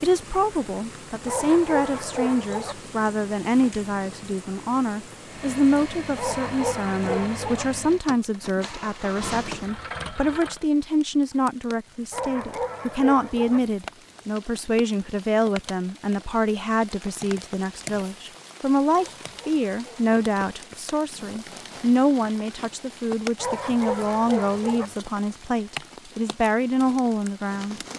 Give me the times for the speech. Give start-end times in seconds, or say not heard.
0.0-27.8.